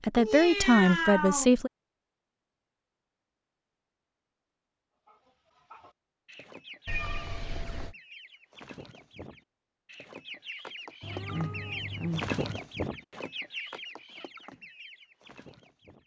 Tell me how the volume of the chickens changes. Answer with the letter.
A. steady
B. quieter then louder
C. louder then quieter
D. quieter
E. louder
C.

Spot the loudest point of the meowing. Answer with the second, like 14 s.
1 s.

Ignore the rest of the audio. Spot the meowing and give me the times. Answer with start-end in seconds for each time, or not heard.
0.1-1.5, 6.8-8.0, 11.0-12.4.